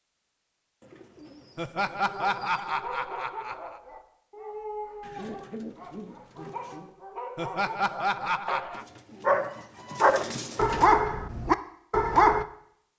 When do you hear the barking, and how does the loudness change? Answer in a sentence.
You can hear the barking from 2.0 to 12.4 s, getting louder.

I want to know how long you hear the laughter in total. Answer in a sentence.
The laughter can be heard for 4 seconds in total.